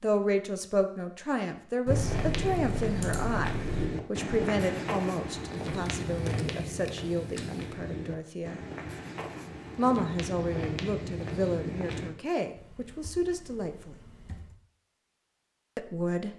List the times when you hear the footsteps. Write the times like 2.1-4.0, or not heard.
1.9-12.2.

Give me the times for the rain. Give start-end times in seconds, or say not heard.
not heard.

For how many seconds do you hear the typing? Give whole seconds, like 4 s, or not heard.
6 s.